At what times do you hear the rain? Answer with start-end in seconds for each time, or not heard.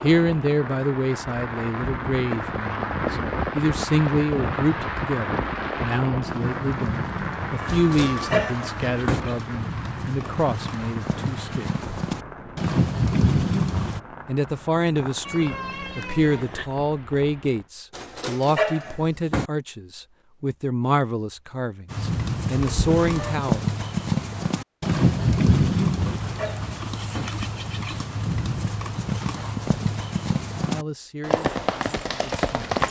0.0-17.7.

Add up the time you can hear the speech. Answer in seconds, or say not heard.
23 s.